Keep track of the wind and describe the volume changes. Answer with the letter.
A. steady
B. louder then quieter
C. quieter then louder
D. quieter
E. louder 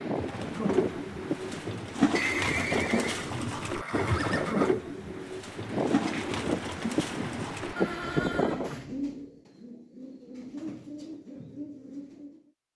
E.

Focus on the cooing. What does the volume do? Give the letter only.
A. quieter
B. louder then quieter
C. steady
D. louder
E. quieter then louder
A.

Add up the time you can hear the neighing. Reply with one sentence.
You can hear the neighing for 4 seconds altogether.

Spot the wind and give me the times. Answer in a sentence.
The wind can be heard from 0.0 to 8.8 s.